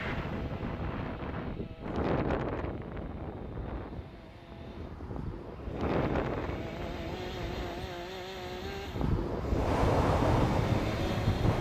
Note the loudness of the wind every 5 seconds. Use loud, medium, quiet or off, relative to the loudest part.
medium, medium, loud.